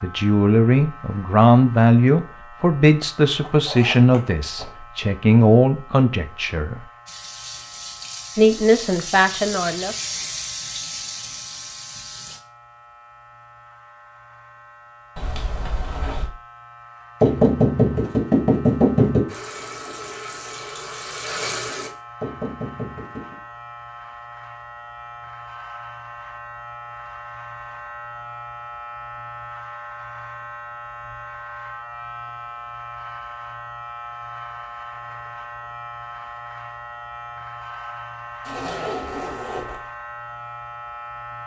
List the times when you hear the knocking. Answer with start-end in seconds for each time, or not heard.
17.2-19.2, 22.2-23.4.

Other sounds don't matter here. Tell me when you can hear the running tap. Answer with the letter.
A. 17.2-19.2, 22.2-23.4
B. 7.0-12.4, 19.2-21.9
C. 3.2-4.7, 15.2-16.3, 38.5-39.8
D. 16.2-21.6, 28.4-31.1
B.